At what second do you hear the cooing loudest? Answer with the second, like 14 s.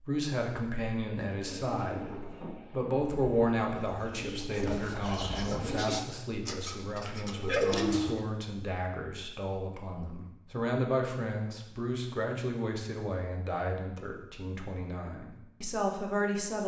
8 s.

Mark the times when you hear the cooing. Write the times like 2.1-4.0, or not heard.
1.3-8.2.